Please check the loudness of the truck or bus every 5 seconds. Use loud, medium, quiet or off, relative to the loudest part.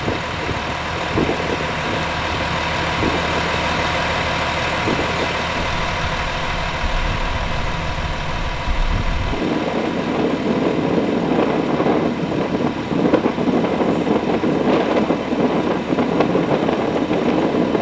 loud, loud, medium, medium.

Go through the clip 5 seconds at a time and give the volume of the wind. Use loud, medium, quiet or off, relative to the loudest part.
medium, medium, loud, loud.